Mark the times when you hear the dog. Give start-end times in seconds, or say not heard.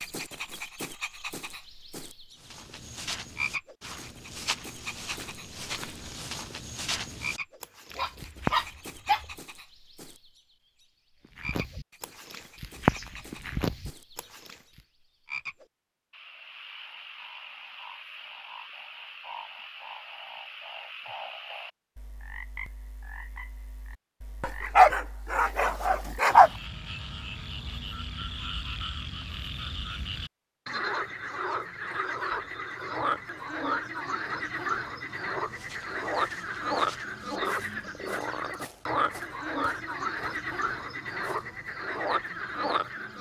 7.9-9.2, 24.4-26.5.